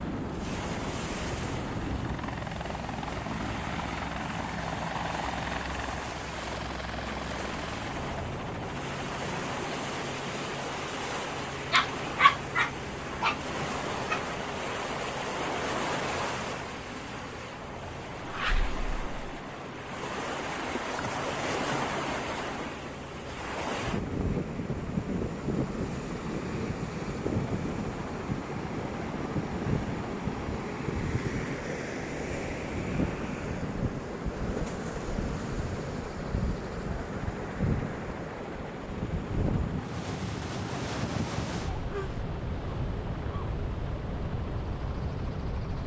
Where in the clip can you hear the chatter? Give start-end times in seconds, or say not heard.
not heard.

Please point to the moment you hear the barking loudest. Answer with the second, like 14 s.
12 s.